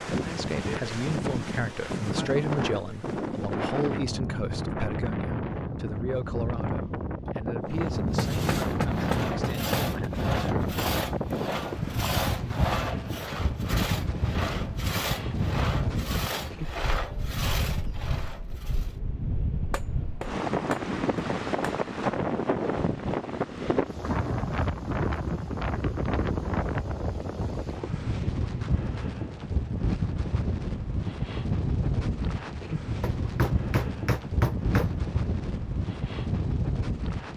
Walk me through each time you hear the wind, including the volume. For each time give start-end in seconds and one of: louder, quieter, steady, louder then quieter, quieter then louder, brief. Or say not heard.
0.0-37.3 steady.